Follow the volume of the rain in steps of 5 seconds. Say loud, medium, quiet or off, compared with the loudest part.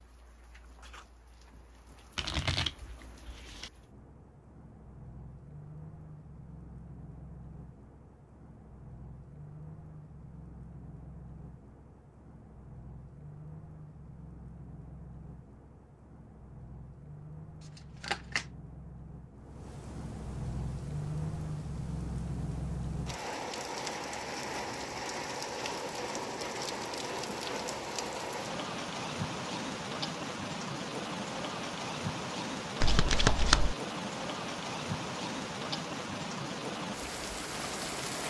quiet, quiet, quiet, quiet, loud, loud, loud, loud.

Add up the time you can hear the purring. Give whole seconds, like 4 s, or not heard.
not heard.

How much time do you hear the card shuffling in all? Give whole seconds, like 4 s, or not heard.
3 s.